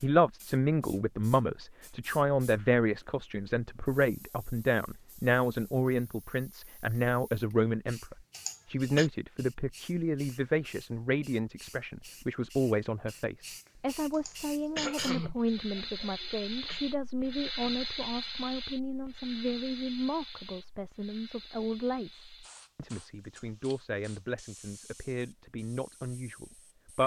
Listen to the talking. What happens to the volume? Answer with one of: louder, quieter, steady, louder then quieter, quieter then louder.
quieter.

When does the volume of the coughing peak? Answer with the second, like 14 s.
15 s.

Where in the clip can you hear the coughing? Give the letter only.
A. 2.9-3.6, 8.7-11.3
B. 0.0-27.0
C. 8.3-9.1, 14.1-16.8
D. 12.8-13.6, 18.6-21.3
C.